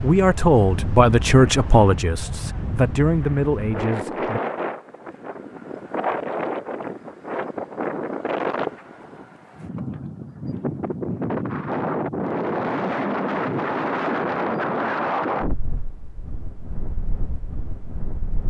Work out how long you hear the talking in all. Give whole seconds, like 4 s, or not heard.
4 s.